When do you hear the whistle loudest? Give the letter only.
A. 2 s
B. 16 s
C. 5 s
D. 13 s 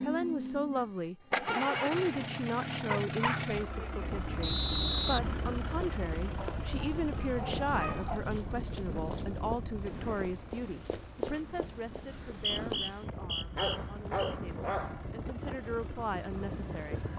C.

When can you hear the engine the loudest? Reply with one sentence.
The volume of the engine peaks at 2 seconds.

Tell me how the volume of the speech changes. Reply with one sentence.
The volume of the speech goes down.